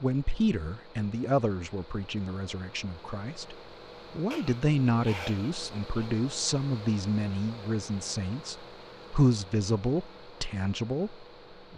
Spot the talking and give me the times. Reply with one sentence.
The talking can be heard from 0.0 to 11.7 s.